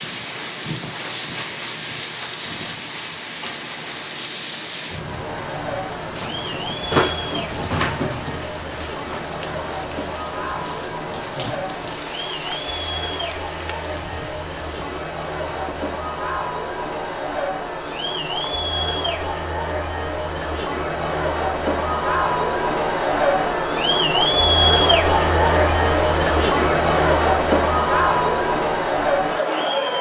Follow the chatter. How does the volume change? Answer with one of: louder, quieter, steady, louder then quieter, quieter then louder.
louder.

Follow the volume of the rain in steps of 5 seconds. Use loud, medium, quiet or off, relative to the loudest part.
loud, loud, medium, quiet, off, off.